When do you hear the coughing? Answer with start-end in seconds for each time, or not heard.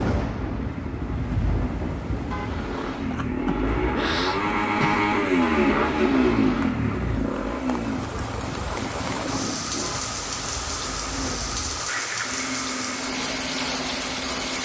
3.1-5.1.